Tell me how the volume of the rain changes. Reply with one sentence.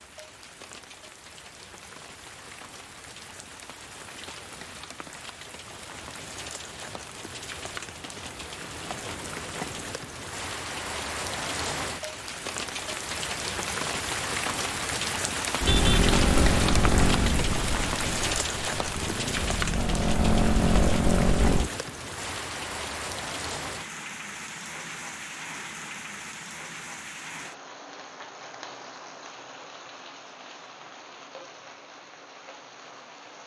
The volume of the rain goes up, then down.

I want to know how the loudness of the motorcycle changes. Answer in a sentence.
The loudness of the motorcycle goes down, then up.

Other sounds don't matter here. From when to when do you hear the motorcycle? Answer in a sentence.
You can hear the motorcycle from 15.6 to 21.7 s.